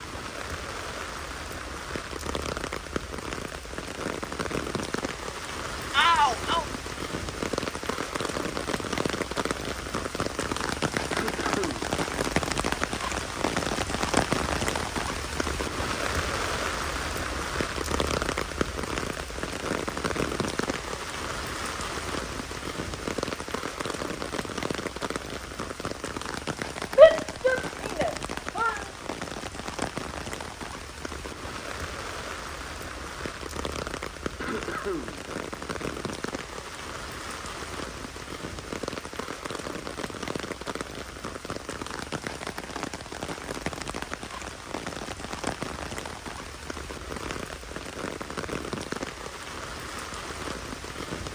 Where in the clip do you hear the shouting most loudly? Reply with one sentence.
The volume of the shouting peaks at 27 seconds.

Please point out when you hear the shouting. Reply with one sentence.
You can hear the shouting from 5.9 to 6.7 s and from 26.9 to 28.8 s.